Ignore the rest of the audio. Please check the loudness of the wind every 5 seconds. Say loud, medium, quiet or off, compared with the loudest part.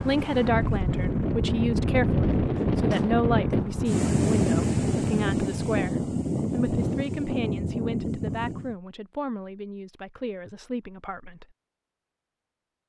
loud, loud, off.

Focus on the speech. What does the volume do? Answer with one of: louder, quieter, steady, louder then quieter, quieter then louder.
quieter.